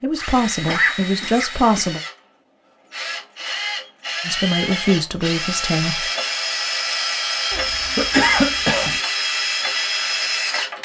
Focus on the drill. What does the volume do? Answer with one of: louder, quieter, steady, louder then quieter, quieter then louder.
louder.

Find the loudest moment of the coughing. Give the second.
8 s.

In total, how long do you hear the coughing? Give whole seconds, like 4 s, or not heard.
3 s.